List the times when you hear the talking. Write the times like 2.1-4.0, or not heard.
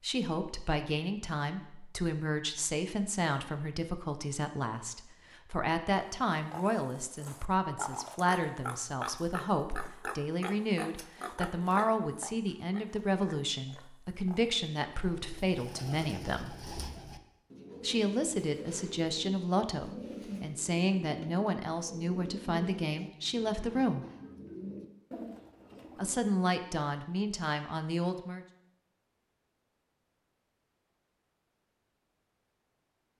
0.0-16.6, 17.8-24.1, 25.9-28.4.